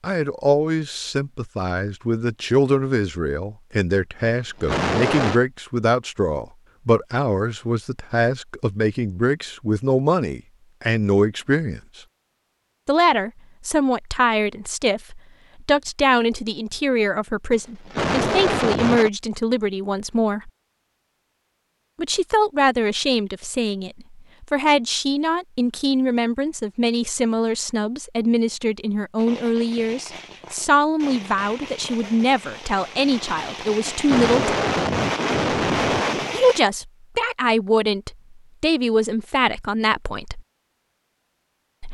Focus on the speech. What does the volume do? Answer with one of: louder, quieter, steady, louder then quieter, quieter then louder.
steady.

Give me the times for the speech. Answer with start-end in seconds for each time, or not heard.
0.0-11.8, 12.8-20.5, 21.9-34.5, 36.3-40.4.